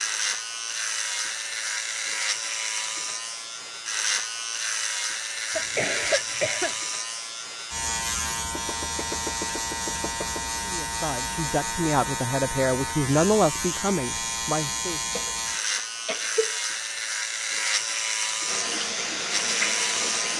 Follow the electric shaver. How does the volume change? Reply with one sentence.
The loudness of the electric shaver stays about the same.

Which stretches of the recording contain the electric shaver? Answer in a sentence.
You can hear the electric shaver from 0.0 to 20.3 s.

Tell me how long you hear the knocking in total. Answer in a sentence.
The knocking can be heard for 2 seconds in total.